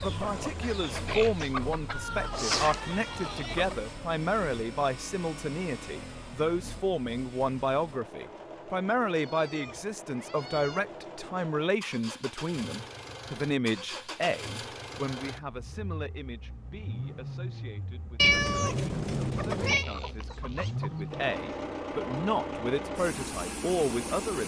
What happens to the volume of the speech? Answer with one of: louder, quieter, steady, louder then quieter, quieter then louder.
quieter then louder.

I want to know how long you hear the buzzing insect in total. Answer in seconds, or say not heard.
not heard.